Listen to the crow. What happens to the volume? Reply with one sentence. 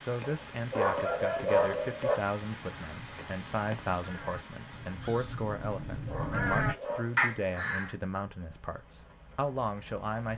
The loudness of the crow goes up.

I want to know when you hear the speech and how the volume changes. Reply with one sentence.
The speech can be heard from 0.0 to 10.3 s, at a steady volume.